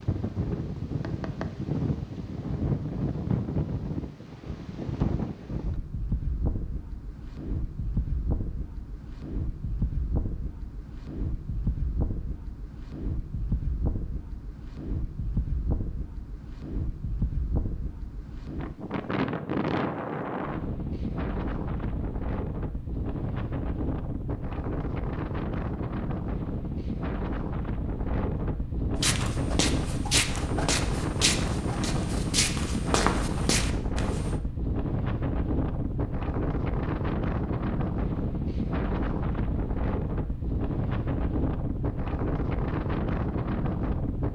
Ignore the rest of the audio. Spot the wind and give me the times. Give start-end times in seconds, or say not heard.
0.0-44.3.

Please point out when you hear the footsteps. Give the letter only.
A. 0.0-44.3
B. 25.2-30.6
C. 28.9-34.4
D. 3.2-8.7
C.